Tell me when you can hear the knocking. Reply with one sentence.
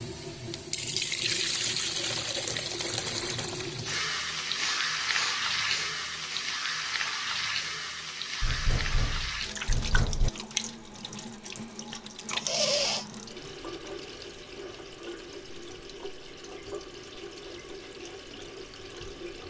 You can hear the knocking from 8.4 to 10.3 s.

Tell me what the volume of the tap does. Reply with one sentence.
The loudness of the tap goes down.